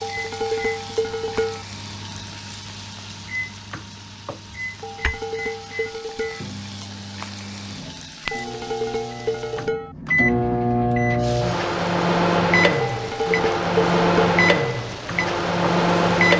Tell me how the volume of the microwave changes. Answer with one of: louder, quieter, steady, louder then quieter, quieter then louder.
louder.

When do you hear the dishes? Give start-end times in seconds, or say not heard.
0.0-1.6, 4.8-6.5, 8.3-9.9, 12.8-14.4.